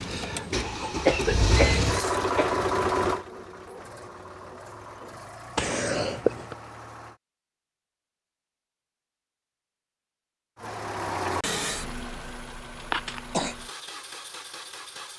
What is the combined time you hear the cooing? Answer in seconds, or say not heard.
not heard.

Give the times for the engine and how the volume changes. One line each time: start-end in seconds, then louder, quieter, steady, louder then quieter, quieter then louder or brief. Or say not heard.
0.0-7.2 quieter
10.6-15.1 quieter.